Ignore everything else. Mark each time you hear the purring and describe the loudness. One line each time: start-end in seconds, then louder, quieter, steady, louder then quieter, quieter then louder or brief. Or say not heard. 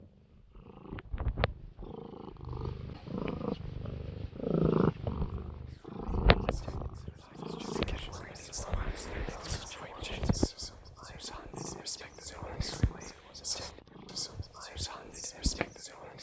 0.0-16.1 louder then quieter.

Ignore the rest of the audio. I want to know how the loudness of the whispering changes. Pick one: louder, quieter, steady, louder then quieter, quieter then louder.
louder.